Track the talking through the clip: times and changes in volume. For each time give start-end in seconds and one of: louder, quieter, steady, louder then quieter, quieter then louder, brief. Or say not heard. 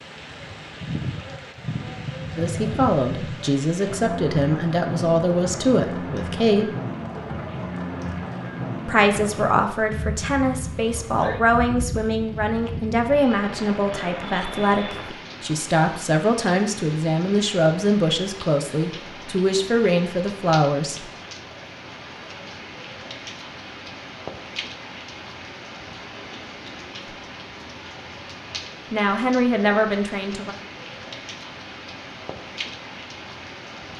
2.4-6.8 steady
8.8-21.1 steady
28.9-30.6 brief.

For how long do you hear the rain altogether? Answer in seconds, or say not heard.
34 s.